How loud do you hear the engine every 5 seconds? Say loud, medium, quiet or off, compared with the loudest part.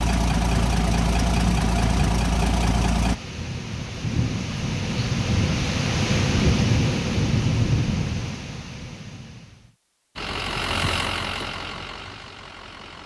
loud, off, medium.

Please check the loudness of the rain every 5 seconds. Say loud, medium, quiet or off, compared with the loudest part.
medium, loud, off.